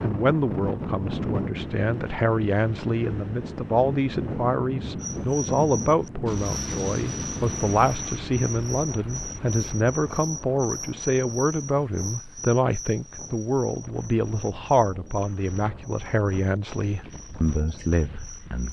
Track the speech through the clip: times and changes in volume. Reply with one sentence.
The speech can be heard from 0.0 to 18.6 s, at a steady volume.